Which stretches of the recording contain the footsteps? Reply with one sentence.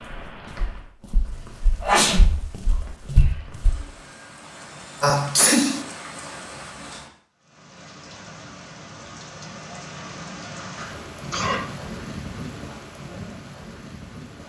The footsteps can be heard from 0.1 to 3.8 s.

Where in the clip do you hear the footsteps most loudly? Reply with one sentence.
The volume of the footsteps peaks at 3 seconds.